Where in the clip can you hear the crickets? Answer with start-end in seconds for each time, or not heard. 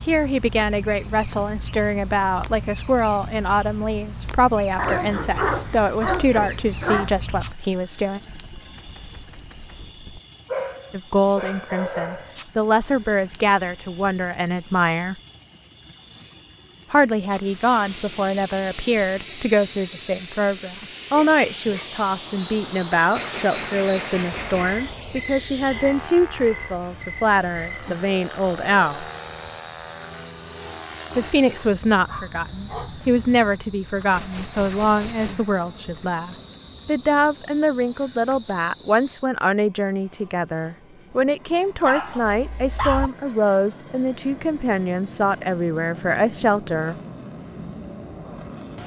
0.0-39.3.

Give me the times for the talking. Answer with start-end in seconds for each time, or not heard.
0.1-8.2, 10.9-15.2, 16.9-29.1, 31.1-47.0.